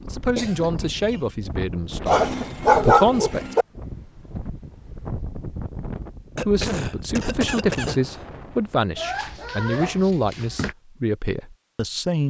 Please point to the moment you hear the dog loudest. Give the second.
3 s.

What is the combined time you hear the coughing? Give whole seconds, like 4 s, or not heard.
3 s.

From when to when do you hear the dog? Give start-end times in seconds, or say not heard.
2.0-3.6, 8.9-10.8.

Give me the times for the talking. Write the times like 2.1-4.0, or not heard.
0.1-3.5, 6.4-12.2.